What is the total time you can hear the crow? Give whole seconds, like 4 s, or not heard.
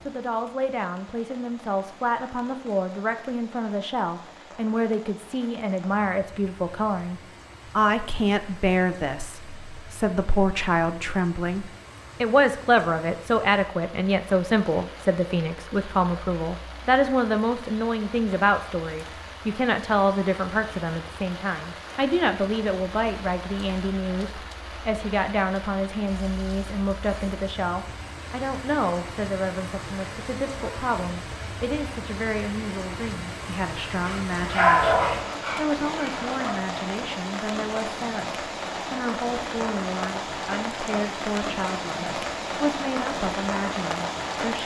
not heard.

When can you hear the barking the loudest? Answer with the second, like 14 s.
35 s.